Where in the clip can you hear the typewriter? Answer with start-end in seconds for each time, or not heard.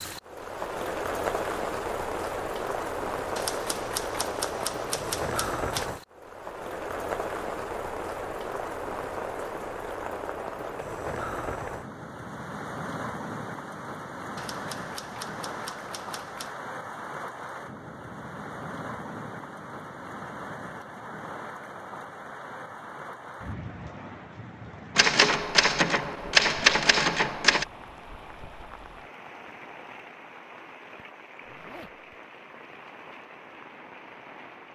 3.4-5.9, 14.3-16.5, 24.9-27.6.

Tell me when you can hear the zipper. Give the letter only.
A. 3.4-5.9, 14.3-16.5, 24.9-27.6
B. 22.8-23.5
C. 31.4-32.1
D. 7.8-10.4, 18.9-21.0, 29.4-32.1
C.